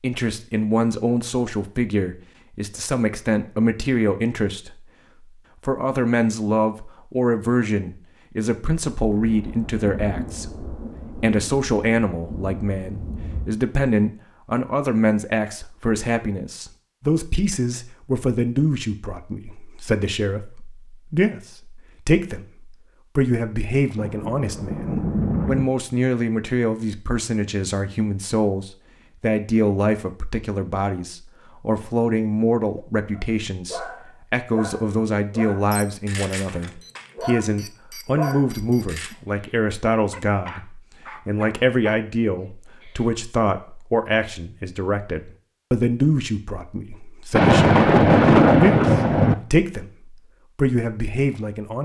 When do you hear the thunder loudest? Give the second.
48 s.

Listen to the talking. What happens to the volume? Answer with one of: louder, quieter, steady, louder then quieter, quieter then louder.
steady.